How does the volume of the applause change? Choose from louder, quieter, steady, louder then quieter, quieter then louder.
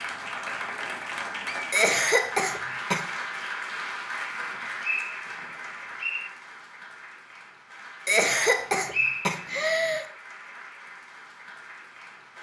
quieter.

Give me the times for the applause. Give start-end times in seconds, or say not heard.
0.0-12.3.